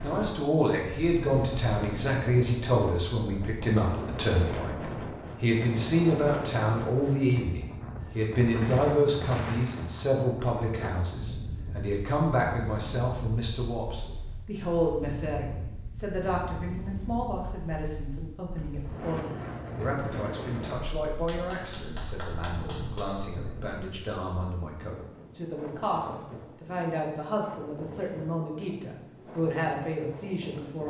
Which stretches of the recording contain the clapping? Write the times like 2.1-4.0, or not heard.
21.2-23.1.